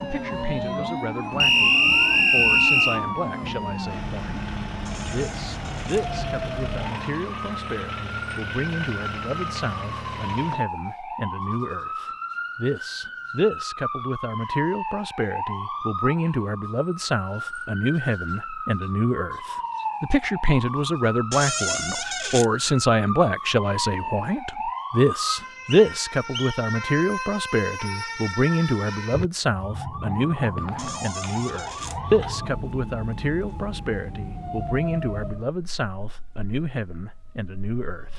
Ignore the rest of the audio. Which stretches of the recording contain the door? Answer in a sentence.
You can hear the door from 4.8 to 6.0 s, from 21.3 to 22.4 s and from 30.8 to 32.0 s.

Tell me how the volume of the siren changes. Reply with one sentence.
The loudness of the siren stays about the same.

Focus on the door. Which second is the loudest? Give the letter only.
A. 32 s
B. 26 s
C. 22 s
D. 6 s
C.